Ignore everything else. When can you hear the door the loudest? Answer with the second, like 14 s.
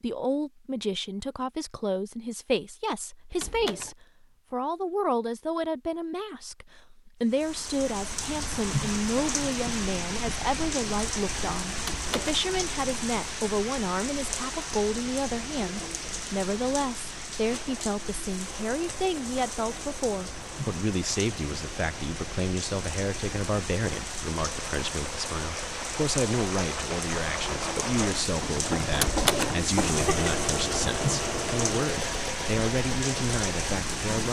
29 s.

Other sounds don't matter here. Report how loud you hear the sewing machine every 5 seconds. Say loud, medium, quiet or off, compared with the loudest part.
off, off, off, quiet, medium, loud, loud.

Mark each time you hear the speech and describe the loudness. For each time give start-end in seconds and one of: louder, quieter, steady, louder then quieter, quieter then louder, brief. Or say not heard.
0.0-34.2 steady.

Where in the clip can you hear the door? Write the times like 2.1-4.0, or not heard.
3.3-4.0, 11.8-12.4, 28.9-29.6.